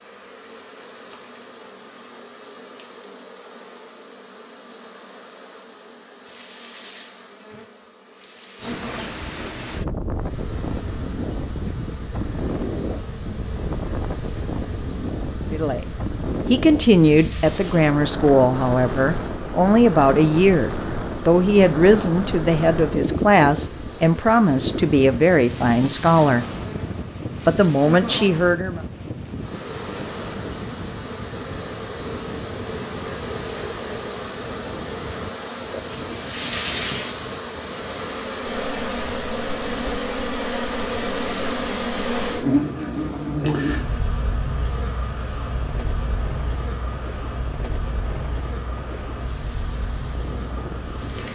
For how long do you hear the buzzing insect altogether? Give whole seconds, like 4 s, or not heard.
51 s.